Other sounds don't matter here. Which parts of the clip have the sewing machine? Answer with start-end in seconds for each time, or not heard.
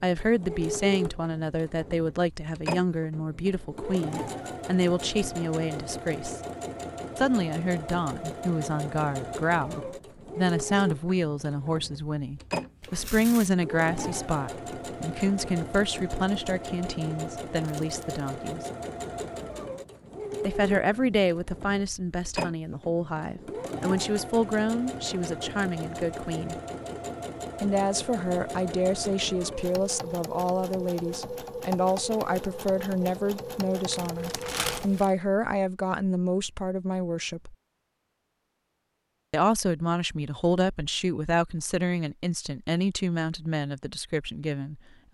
0.0-35.0.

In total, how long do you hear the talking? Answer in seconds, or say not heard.
40 s.